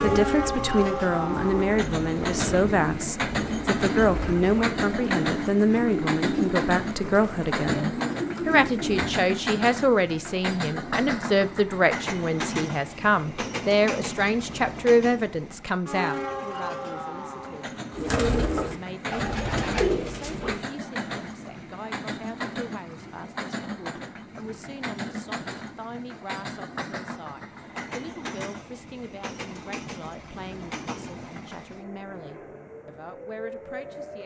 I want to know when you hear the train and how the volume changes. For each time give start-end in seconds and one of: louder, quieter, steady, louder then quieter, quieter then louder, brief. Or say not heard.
0.0-34.2 quieter.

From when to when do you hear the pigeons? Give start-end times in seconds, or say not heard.
0.0-9.2, 17.9-20.6.